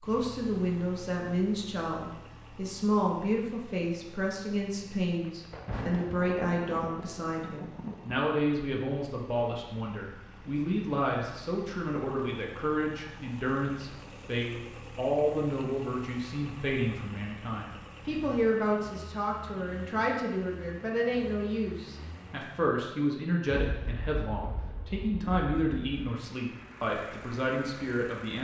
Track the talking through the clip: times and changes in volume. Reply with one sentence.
The talking can be heard from 0.0 to 28.3 s, at a steady volume.